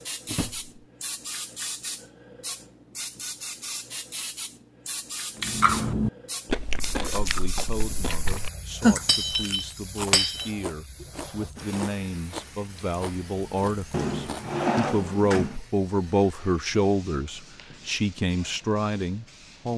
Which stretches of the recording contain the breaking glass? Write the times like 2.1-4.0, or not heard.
9.1-10.5.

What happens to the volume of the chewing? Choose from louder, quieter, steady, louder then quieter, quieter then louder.
quieter.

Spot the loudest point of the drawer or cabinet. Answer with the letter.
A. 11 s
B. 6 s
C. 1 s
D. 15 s
D.